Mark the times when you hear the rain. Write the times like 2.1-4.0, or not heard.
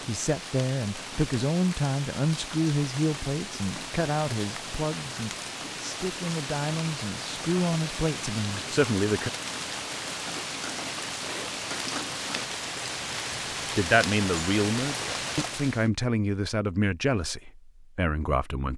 0.0-15.9.